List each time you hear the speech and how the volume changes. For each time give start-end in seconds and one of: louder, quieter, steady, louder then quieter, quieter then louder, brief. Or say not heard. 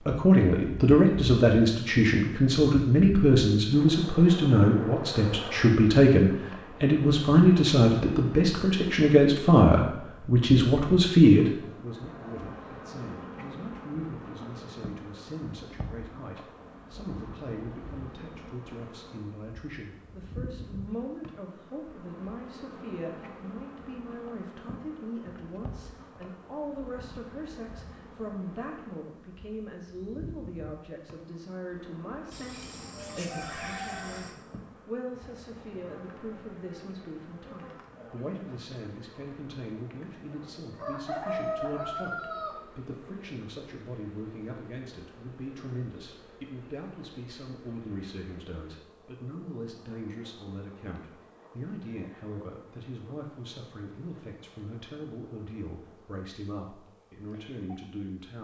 0.1-58.3 quieter.